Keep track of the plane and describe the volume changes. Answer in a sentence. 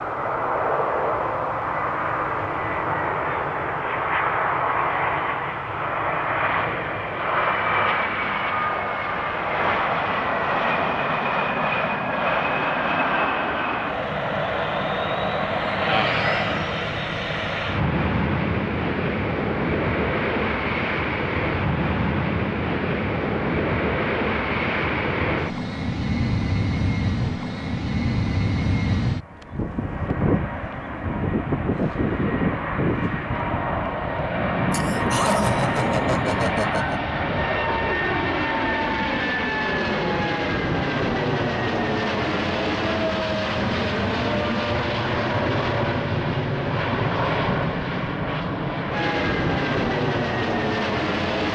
The loudness of the plane stays about the same.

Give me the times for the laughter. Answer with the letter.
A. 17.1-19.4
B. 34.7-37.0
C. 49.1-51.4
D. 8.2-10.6
B.